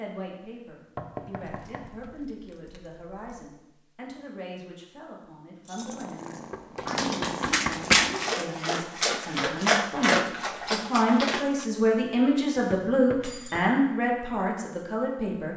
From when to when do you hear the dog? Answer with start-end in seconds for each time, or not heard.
6.8-11.7.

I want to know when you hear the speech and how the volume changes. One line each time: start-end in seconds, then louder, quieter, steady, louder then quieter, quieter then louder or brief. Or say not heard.
0.0-15.5 louder.